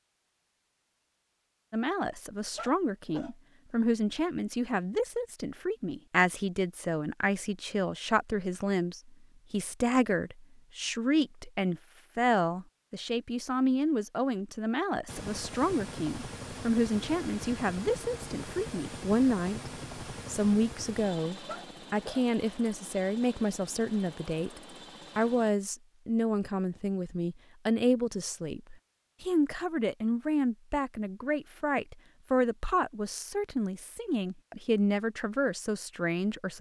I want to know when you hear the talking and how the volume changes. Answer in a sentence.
The talking can be heard from 1.7 to 36.5 s, at a steady volume.